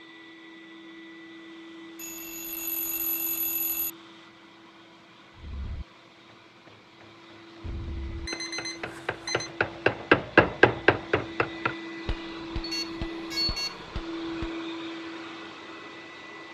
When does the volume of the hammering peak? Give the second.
10 s.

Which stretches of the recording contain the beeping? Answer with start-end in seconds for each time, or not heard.
1.9-3.9, 8.2-9.5, 12.6-13.8.